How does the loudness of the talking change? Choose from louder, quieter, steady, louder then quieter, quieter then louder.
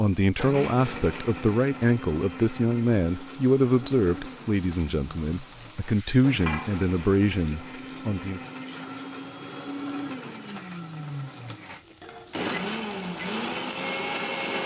steady.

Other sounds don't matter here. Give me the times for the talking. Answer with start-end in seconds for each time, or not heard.
0.0-8.4.